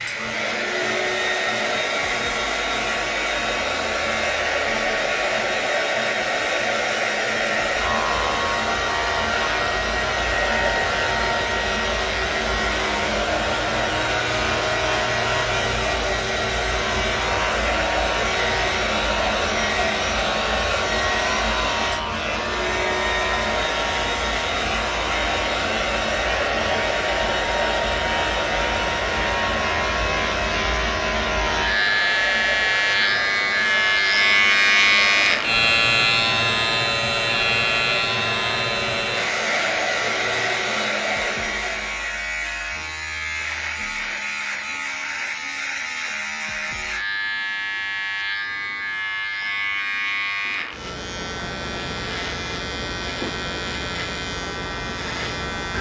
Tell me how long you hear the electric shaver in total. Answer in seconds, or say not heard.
56 s.